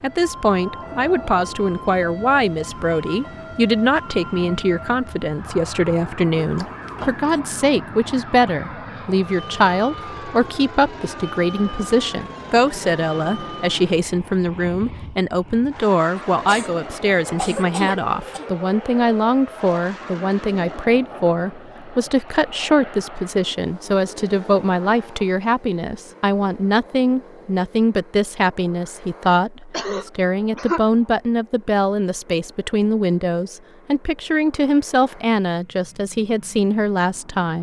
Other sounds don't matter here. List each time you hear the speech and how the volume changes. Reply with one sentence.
The speech can be heard from 0.0 to 37.5 s, at a steady volume.